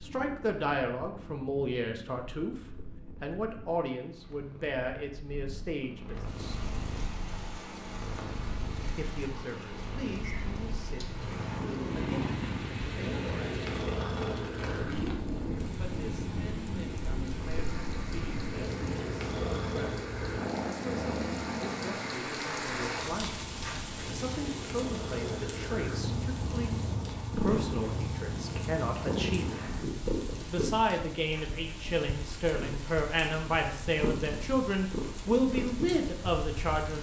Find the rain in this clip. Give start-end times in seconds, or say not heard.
6.2-36.9.